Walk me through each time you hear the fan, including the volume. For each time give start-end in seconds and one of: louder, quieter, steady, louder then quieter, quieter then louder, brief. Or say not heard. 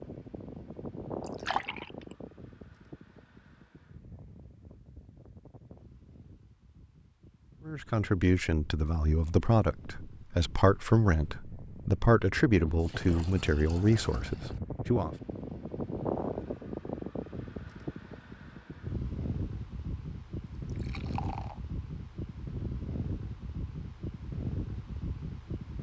0.0-25.7 quieter then louder.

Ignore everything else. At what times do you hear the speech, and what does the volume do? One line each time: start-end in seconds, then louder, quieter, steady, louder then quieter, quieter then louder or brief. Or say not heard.
7.7-15.2 steady.